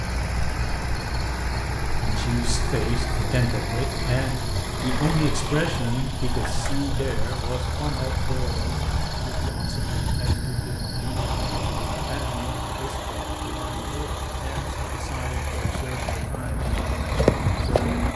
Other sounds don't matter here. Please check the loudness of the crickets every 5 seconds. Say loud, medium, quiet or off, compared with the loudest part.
loud, loud, loud, off.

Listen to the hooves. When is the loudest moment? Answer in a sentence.
The volume of the hooves peaks at 17 seconds.